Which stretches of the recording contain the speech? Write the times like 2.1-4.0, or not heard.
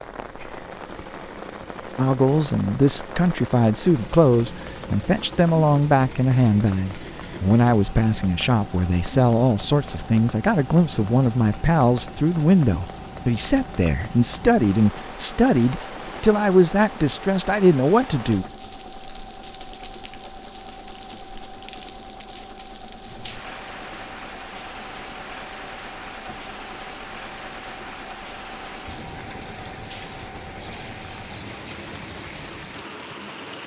1.9-18.4.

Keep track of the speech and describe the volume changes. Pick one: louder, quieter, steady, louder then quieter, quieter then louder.
steady.